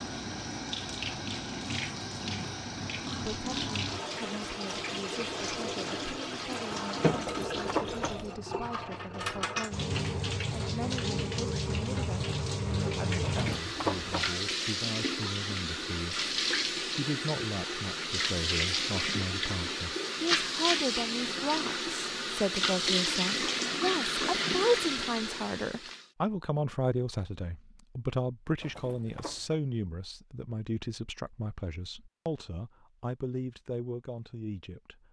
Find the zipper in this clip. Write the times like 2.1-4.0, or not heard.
7.1-8.3, 13.2-14.3, 28.6-29.6.